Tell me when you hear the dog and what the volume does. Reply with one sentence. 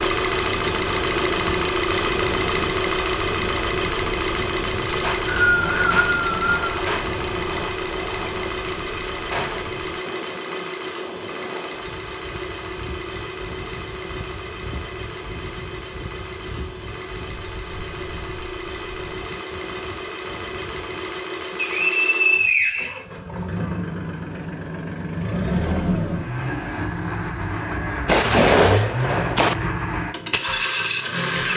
The dog can't be heard in this clip.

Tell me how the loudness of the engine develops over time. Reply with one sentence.
The loudness of the engine goes down, then up.